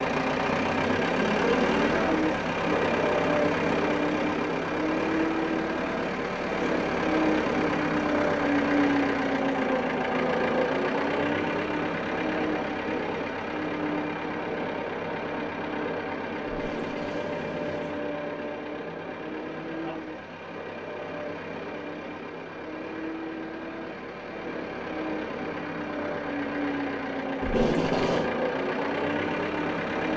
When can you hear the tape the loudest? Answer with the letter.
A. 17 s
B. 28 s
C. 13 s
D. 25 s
B.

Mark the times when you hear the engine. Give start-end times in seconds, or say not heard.
0.0-30.1.